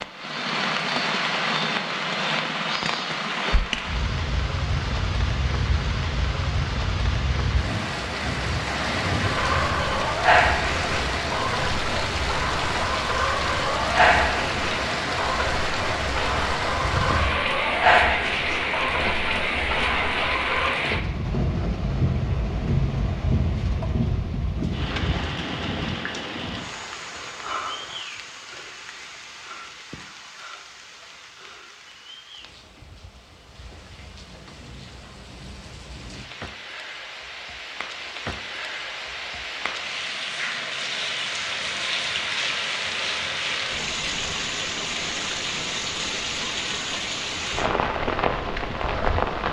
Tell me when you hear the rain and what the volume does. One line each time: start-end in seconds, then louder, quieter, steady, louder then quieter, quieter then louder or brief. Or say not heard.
0.0-49.4 quieter then louder.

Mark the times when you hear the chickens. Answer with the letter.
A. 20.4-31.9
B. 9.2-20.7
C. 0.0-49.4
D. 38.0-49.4
B.